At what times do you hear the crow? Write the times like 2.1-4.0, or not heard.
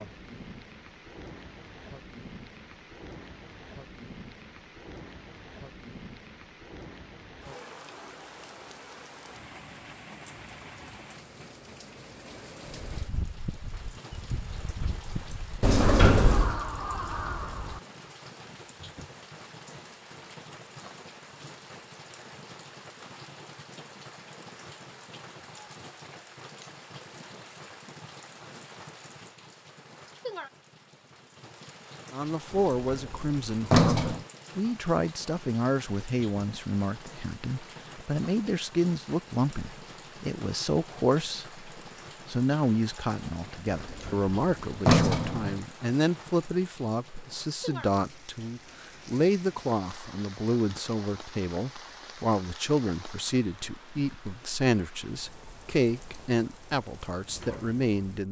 12.8-18.1.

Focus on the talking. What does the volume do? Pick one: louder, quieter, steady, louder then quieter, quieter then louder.
steady.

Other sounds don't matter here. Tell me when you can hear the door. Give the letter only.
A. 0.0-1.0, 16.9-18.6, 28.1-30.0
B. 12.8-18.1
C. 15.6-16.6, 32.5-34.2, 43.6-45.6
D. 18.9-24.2
C.